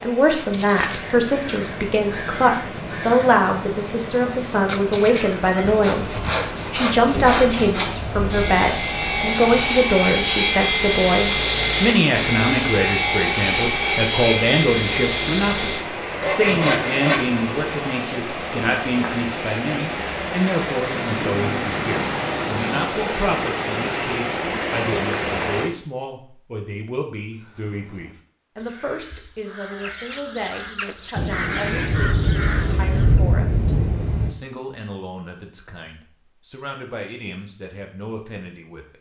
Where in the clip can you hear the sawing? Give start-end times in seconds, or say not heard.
5.8-17.4.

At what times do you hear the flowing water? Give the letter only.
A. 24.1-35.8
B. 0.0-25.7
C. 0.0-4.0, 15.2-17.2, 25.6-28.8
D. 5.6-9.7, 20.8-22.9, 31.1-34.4
B.